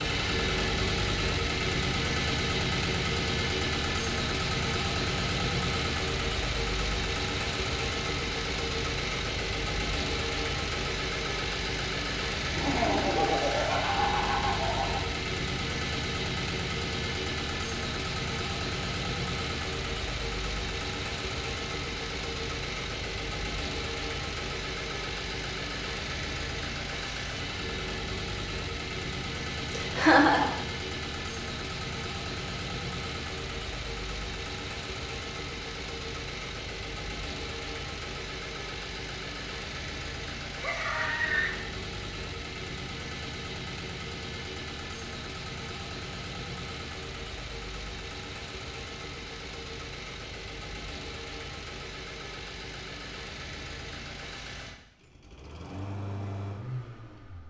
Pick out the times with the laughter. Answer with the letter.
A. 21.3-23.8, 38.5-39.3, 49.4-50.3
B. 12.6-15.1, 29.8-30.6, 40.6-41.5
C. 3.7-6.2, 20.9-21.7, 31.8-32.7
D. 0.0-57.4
B.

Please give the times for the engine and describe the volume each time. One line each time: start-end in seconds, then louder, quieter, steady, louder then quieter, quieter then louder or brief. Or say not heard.
0.0-57.4 quieter.